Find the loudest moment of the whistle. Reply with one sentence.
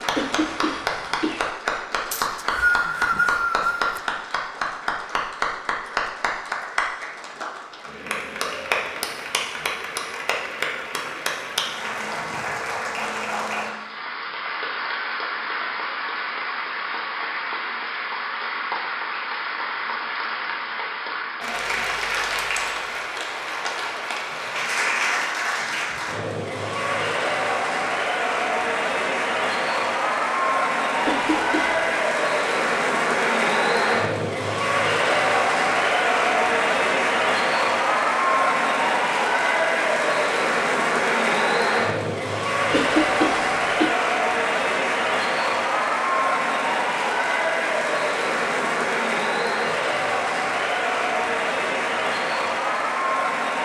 The volume of the whistle peaks at 3 seconds.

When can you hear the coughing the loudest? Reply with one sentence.
The loudest moment of the coughing is at 43 seconds.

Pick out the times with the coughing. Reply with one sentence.
The coughing can be heard from 0.1 to 1.5 s, from 31.1 to 31.9 s and from 42.7 to 44.0 s.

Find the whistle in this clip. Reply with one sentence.
You can hear the whistle from 2.1 to 4.0 s.